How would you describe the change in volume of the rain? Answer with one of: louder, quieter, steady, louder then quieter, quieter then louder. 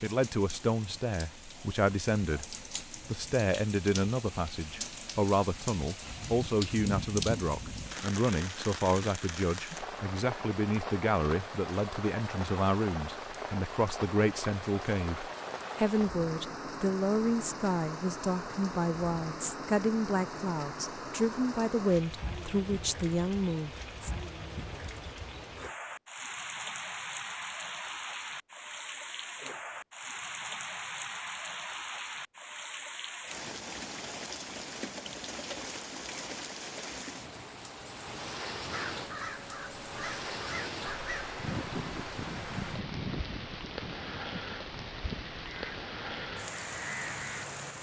steady.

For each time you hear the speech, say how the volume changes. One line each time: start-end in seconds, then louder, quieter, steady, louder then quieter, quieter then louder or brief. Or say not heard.
0.0-24.1 steady.